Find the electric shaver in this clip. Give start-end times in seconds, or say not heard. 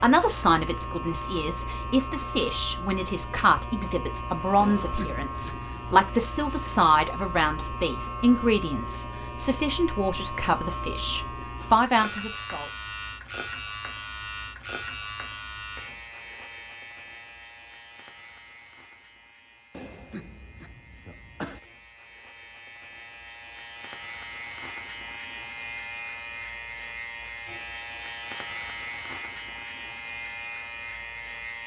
0.0-31.6.